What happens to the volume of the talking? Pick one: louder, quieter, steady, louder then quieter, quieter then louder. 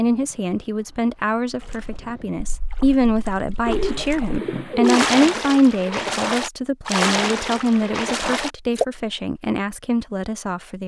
louder then quieter.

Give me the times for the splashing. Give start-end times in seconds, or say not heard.
1.6-8.8.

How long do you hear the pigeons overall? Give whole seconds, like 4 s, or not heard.
2 s.